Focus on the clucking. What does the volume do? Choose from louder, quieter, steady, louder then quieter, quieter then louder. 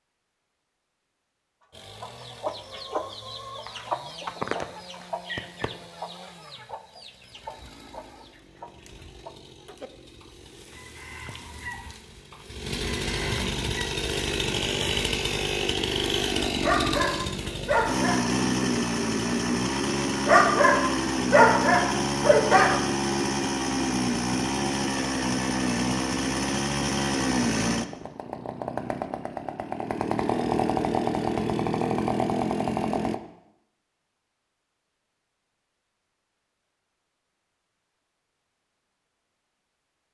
quieter then louder.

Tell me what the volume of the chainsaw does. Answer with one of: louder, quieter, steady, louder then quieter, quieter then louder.
louder.